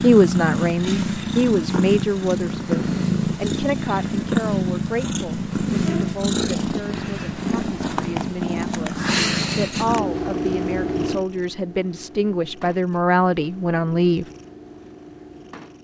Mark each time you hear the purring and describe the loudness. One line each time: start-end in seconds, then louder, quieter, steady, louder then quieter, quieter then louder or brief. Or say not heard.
0.0-15.8 quieter.